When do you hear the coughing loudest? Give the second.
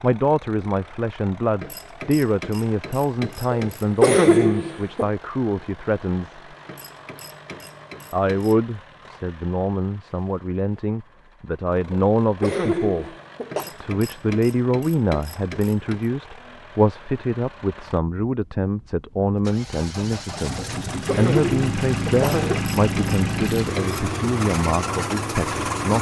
4 s.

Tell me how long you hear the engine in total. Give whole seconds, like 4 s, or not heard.
26 s.